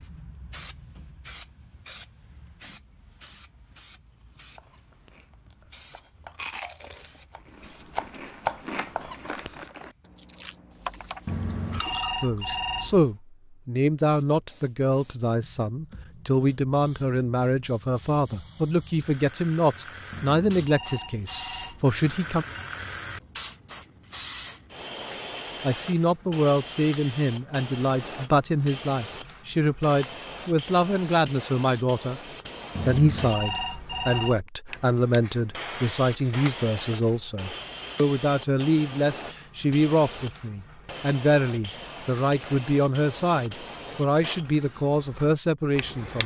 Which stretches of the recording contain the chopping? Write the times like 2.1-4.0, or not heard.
4.3-9.7.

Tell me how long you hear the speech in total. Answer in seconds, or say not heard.
30 s.